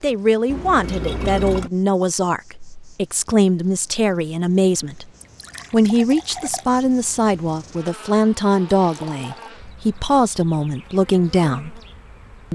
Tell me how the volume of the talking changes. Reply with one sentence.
The loudness of the talking stays about the same.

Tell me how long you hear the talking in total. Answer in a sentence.
The talking can be heard for 11 seconds in total.